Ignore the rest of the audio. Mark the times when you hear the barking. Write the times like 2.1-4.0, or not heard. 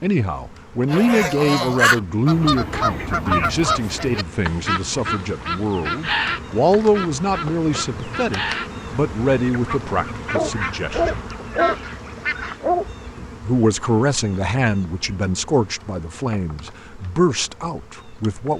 10.3-12.8.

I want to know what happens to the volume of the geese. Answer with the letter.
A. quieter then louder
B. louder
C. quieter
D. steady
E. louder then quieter
C.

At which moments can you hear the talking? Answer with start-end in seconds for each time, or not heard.
0.0-11.3, 13.2-18.5.